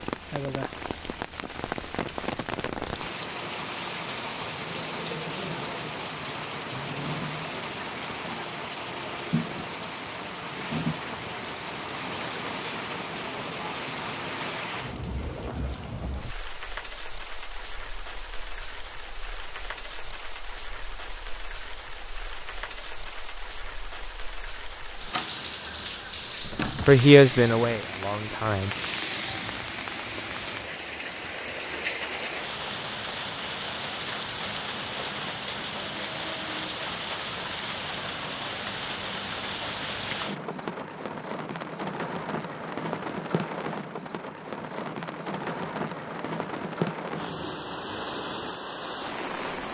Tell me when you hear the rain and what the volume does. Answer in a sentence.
The rain can be heard from 0.0 to 49.7 s, at a steady volume.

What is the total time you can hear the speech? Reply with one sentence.
You can hear the speech for 2 seconds altogether.